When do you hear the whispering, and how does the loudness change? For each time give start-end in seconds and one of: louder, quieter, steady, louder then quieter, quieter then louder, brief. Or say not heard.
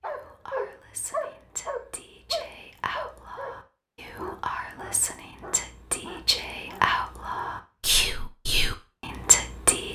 0.1-9.9 louder.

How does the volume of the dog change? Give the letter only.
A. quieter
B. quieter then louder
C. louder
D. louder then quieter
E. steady
A.